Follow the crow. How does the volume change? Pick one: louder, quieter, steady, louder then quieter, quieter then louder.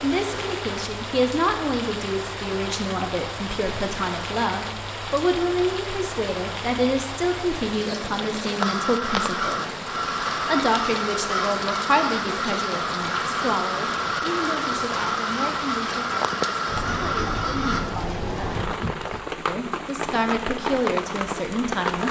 steady.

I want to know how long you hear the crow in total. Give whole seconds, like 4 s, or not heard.
9 s.